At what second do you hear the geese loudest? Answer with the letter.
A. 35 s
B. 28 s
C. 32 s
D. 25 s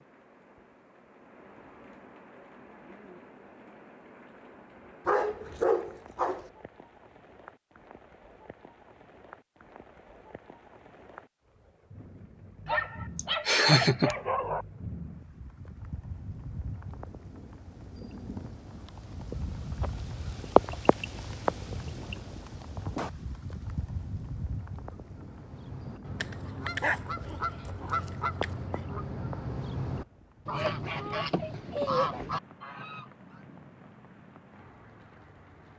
C.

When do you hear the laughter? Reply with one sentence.
The laughter can be heard from 13.2 to 14.2 s.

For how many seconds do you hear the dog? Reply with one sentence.
The dog can be heard for 6 seconds in total.